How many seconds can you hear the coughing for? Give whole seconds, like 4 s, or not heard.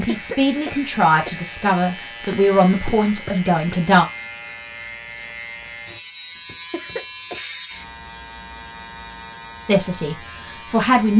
2 s.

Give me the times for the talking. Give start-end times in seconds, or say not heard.
0.0-4.0, 9.7-11.1.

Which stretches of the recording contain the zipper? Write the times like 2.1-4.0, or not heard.
not heard.